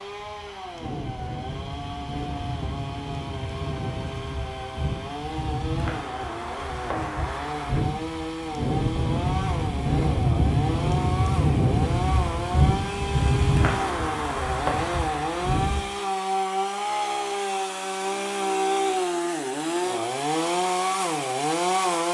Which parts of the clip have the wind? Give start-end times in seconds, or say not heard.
0.0-15.8.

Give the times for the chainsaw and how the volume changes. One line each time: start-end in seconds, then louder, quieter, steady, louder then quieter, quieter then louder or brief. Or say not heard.
0.0-22.0 louder.